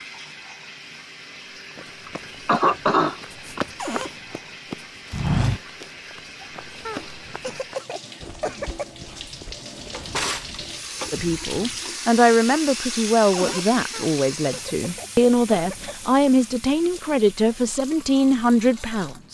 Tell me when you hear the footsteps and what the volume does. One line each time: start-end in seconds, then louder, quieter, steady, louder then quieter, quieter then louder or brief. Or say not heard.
1.6-11.9 louder then quieter.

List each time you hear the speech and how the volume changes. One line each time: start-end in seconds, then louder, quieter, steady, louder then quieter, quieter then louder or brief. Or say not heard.
11.1-19.2 steady.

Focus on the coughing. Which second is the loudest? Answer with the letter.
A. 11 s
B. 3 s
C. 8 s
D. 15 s
B.